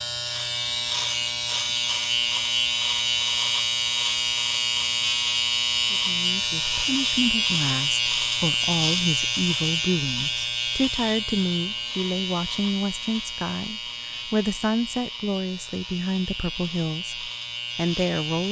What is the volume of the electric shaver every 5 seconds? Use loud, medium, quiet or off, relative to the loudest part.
loud, loud, medium, medium.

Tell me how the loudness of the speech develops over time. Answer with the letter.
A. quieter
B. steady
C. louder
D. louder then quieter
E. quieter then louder
B.